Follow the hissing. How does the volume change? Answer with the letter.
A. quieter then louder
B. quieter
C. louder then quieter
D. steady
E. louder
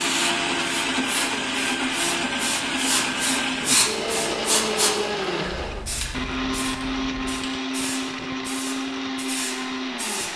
C.